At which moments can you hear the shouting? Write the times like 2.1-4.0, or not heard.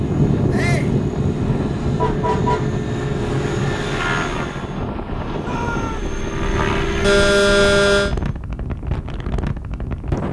0.5-0.9, 5.4-6.2.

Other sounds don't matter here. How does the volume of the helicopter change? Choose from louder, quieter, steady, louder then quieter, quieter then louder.
quieter then louder.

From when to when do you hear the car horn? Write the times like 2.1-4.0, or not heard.
1.2-2.7, 7.0-8.1.